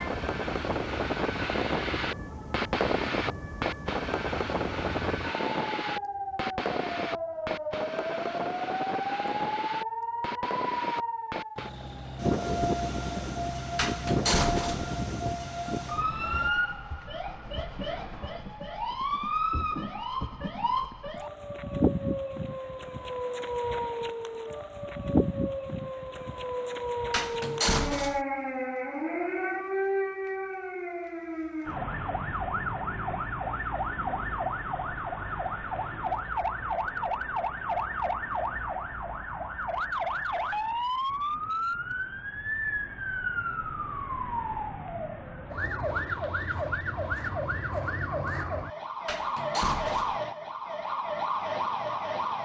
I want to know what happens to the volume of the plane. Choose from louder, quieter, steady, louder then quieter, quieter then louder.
quieter.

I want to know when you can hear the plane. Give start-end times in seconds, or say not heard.
0.0-16.5.